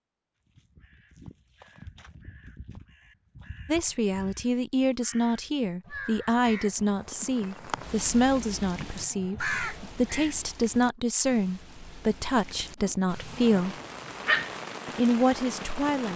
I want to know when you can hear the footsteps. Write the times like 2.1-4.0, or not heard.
not heard.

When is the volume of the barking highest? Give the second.
14 s.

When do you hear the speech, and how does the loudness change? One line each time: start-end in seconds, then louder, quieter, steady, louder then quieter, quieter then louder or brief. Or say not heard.
3.6-13.8 steady
14.8-16.1 brief.